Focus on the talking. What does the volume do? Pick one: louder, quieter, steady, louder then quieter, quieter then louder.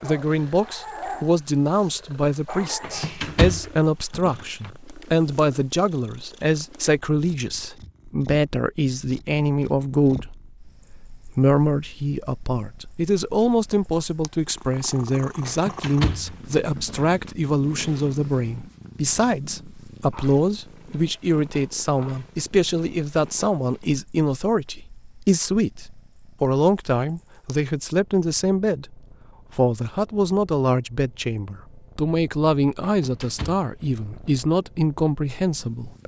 steady.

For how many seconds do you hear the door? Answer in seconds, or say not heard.
5 s.